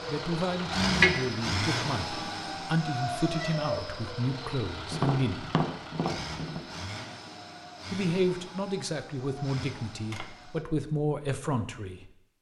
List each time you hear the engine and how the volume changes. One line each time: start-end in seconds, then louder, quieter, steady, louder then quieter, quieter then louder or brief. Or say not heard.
0.0-10.7 quieter.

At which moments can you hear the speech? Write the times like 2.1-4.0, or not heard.
0.1-5.5, 7.9-12.1.